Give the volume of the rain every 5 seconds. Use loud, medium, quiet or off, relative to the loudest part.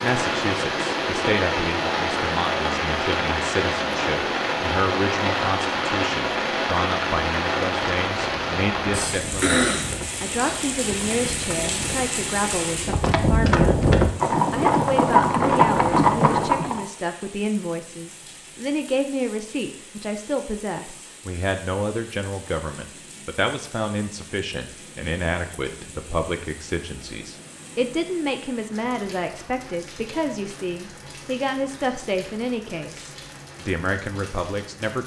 loud, loud, medium, quiet, quiet, quiet, quiet.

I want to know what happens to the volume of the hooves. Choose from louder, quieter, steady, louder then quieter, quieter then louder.
louder.